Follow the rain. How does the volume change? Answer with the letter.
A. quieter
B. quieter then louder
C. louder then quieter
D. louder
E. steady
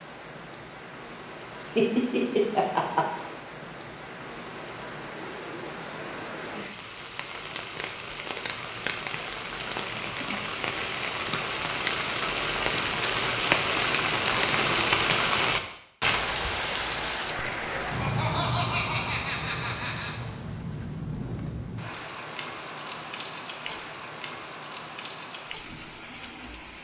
C.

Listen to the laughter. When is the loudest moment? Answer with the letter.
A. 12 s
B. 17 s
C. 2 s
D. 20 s
C.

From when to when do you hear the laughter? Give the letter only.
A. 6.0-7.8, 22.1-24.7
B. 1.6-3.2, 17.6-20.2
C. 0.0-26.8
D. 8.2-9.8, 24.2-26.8
B.